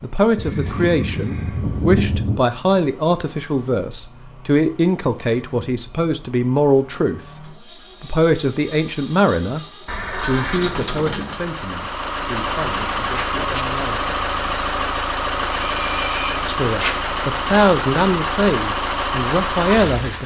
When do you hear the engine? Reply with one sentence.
You can hear the engine from 0.0 to 20.2 s.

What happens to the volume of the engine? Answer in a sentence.
The volume of the engine goes up.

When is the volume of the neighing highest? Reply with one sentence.
The loudest moment of the neighing is at 2 seconds.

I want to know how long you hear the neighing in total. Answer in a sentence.
You can hear the neighing for 4 seconds altogether.